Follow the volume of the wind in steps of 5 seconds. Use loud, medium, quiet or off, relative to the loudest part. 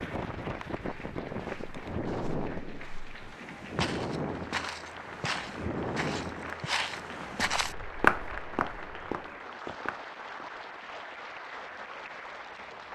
loud, loud, off.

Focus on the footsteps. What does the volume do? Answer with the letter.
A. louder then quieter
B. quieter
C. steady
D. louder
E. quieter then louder
A.